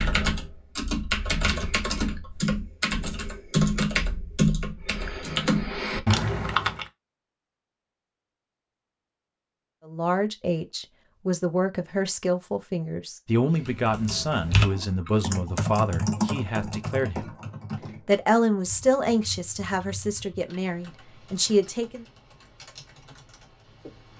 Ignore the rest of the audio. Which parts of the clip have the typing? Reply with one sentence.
The typing can be heard from 0.0 to 6.8 s and from 13.6 to 24.1 s.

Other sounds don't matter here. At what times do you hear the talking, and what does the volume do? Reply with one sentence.
You can hear the talking from 9.8 to 17.3 s, at a steady volume; and from 18.1 to 22.1 s, getting quieter then louder.